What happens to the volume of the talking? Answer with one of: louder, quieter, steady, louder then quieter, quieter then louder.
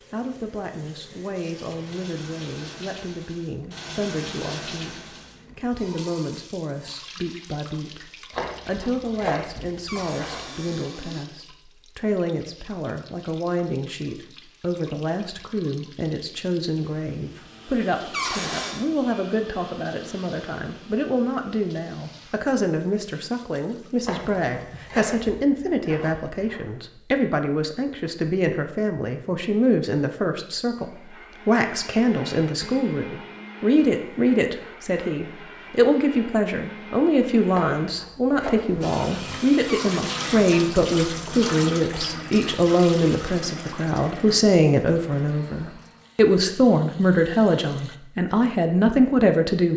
louder.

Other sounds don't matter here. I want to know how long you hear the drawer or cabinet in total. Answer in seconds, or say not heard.
3 s.